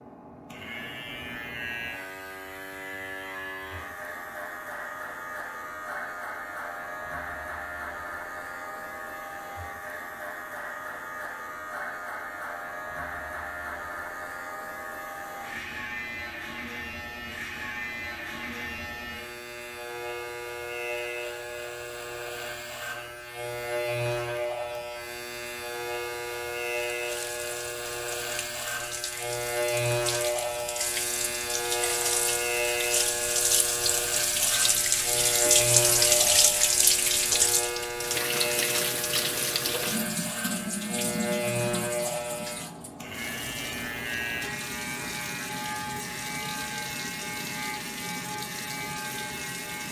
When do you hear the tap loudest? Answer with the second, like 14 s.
36 s.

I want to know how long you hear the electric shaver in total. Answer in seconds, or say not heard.
50 s.